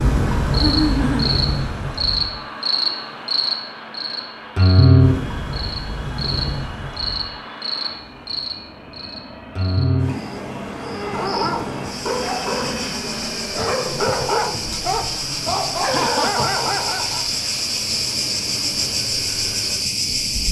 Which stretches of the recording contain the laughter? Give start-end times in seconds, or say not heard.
0.6-1.3, 15.8-16.6.